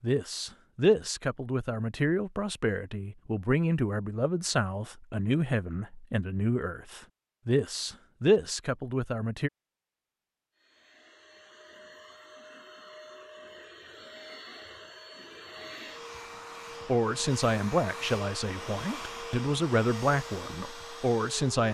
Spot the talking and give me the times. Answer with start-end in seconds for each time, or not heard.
0.0-9.5, 16.9-21.6.